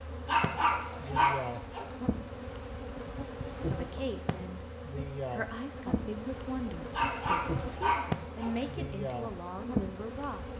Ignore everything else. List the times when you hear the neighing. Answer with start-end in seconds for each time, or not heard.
not heard.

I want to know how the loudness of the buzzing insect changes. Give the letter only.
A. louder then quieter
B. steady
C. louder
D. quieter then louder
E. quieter
B.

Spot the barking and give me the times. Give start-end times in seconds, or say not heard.
0.2-1.9, 6.9-8.7.